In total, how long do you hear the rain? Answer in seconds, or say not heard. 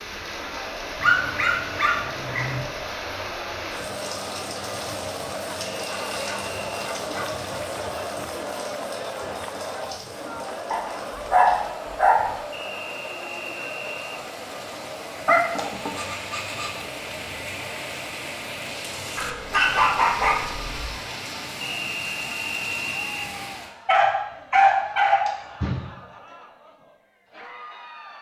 24 s.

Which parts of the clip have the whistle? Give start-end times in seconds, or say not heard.
5.7-6.9, 12.5-14.2, 21.6-23.3.